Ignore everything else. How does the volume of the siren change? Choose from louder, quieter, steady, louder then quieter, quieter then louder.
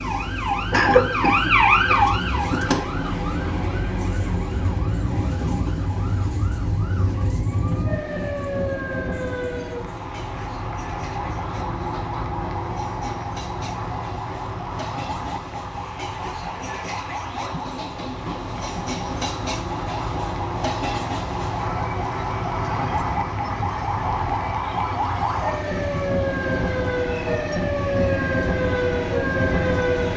quieter then louder.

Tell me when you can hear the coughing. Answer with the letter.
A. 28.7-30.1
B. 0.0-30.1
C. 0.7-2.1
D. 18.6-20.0
C.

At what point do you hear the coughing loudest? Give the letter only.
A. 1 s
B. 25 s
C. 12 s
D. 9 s
A.